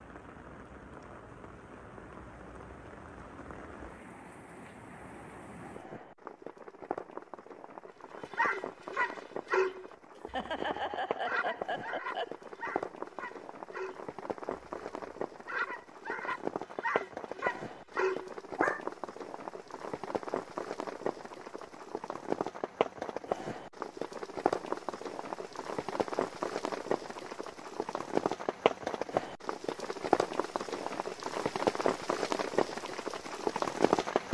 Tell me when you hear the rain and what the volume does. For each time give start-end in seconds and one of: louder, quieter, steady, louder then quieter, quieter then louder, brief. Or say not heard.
0.0-34.2 louder.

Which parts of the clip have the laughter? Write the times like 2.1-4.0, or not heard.
10.2-12.3.